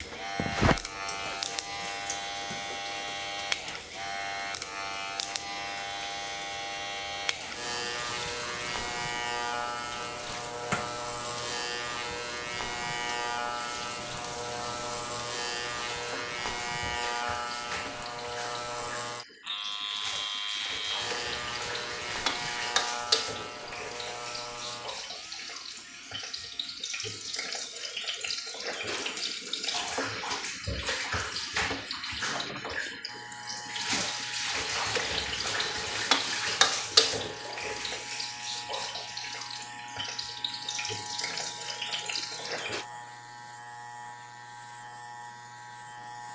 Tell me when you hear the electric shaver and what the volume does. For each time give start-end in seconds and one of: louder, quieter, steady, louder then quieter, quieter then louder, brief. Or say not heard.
0.0-46.3 quieter.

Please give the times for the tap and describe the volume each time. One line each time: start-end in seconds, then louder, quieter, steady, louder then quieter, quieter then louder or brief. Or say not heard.
0.0-42.9 louder.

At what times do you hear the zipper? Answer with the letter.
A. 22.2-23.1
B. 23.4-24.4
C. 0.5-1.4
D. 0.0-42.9
C.